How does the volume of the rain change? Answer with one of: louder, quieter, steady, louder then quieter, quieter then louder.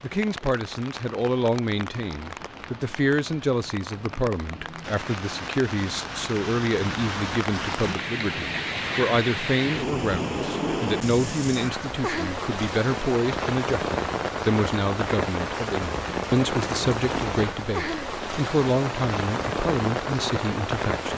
louder.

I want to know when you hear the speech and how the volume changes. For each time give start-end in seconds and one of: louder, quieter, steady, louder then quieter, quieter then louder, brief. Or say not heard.
0.0-21.1 steady.